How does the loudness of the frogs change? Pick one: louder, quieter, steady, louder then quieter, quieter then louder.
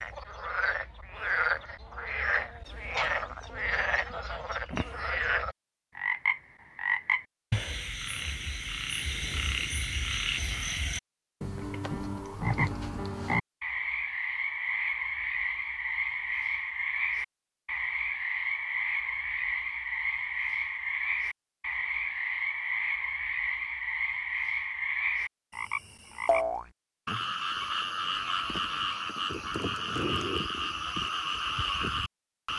steady.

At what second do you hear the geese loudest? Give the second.
3 s.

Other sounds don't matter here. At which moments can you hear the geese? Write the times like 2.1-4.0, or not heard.
3.0-4.7.